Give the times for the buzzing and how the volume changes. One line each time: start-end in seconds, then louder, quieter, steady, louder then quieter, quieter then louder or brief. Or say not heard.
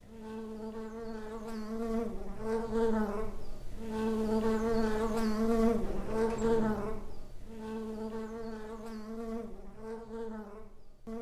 0.0-11.1 louder then quieter.